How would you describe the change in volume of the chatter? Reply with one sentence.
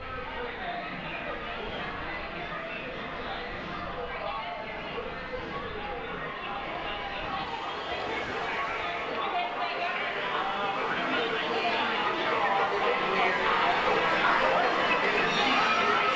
The loudness of the chatter goes up.